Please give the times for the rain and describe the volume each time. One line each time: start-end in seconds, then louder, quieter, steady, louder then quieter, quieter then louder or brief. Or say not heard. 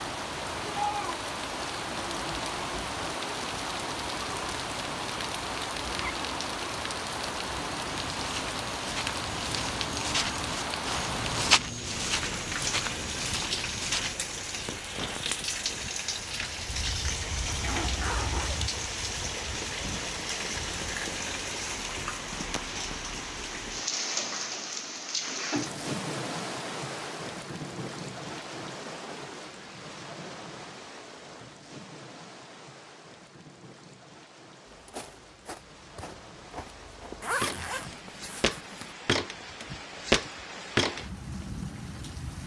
0.0-42.4 quieter.